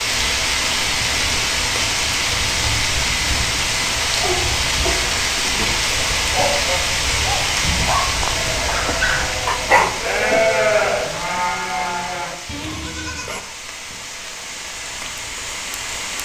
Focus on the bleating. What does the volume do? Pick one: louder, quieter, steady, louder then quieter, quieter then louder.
louder then quieter.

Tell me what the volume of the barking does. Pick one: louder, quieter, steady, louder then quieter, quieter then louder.
louder.